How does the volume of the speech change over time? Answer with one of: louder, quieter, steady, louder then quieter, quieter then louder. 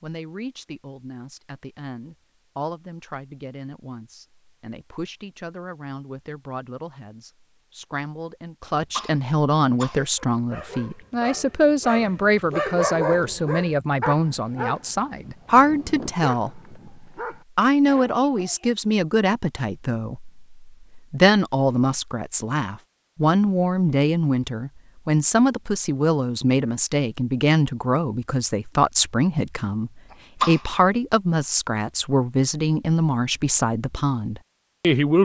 louder.